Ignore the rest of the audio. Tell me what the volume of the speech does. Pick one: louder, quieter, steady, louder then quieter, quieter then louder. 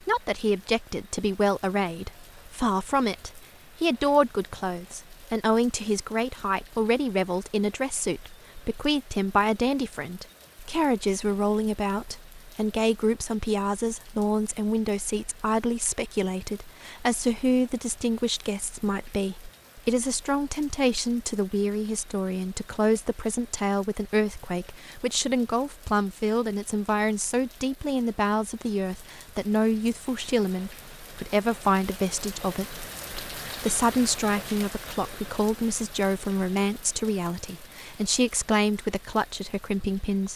steady.